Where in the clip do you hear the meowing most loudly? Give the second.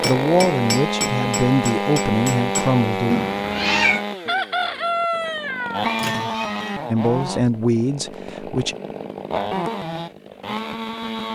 4 s.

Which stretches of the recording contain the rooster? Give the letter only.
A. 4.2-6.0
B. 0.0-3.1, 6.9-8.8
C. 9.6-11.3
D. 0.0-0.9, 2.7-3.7
A.